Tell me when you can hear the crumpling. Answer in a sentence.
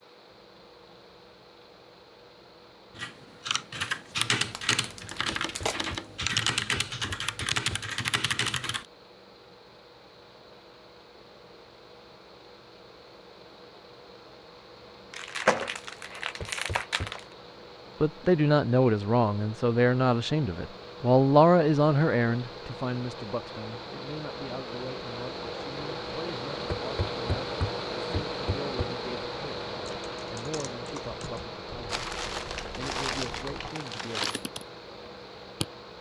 The crumpling can be heard from 4.4 to 6.0 s, from 15.1 to 17.2 s and from 31.9 to 34.4 s.